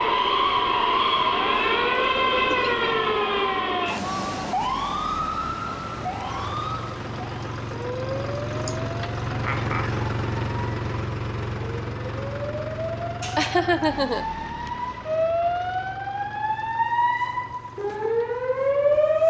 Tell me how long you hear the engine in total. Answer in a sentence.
You can hear the engine for 19 seconds altogether.